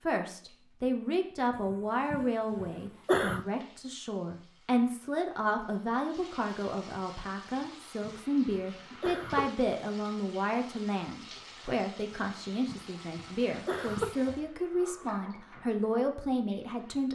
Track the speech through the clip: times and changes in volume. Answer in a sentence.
You can hear the speech from 0.1 to 17.0 s, at a steady volume.